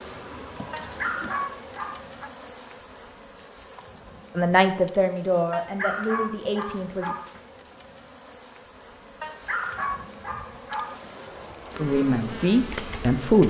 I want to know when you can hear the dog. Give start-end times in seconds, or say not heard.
0.7-2.3, 5.5-7.5, 9.2-11.1.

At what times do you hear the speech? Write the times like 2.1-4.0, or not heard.
4.3-7.1, 11.8-13.4.